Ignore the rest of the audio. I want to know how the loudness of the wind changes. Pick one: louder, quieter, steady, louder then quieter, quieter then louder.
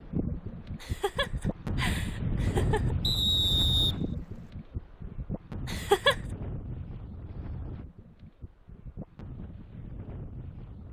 quieter.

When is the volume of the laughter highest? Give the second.
6 s.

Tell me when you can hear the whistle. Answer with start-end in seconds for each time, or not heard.
3.0-4.5.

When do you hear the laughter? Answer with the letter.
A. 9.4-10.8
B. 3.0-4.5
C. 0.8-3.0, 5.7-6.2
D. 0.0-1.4
C.